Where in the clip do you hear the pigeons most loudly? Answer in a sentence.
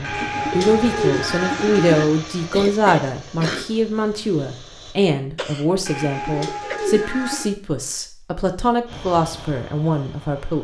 The volume of the pigeons peaks at 1 second.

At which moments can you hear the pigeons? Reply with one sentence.
The pigeons can be heard from 0.0 to 2.0 s and from 5.8 to 7.5 s.